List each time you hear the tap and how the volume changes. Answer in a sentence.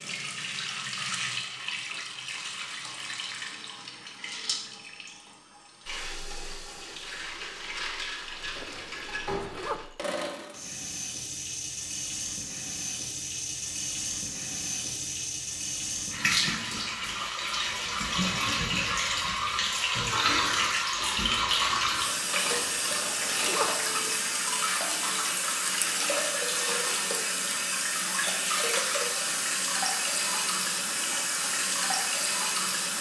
You can hear the tap from 0.0 to 32.9 s, getting louder.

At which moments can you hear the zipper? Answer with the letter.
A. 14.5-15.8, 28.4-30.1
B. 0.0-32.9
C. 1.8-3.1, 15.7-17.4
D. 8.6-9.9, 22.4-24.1
D.